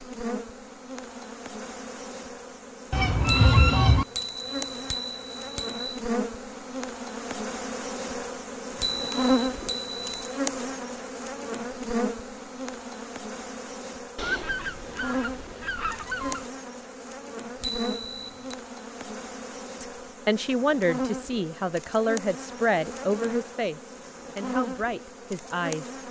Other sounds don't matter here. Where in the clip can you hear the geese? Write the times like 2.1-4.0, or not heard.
2.9-4.0, 14.2-16.5.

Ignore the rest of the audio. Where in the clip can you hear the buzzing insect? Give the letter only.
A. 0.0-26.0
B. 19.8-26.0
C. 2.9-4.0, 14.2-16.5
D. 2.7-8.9
A.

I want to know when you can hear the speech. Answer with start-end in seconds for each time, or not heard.
19.8-26.0.